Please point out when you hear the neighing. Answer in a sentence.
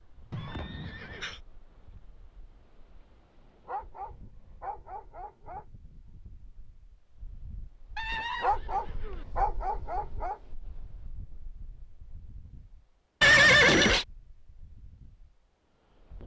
The neighing can be heard from 0.3 to 1.4 s, from 8.0 to 9.2 s and from 13.2 to 14.1 s.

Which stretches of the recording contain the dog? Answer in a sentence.
You can hear the dog from 3.6 to 5.7 s and from 8.4 to 10.4 s.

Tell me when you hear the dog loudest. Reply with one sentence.
The loudest moment of the dog is at 9 seconds.